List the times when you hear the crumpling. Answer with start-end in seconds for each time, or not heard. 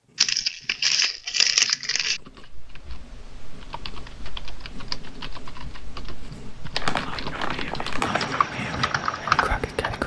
0.1-2.2, 6.8-8.2.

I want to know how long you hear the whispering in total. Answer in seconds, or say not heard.
3 s.